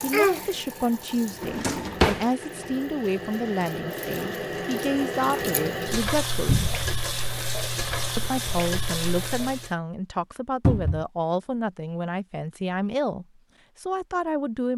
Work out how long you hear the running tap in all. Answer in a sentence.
You can hear the running tap for 10 seconds altogether.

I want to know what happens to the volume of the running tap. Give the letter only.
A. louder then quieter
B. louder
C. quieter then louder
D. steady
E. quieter
B.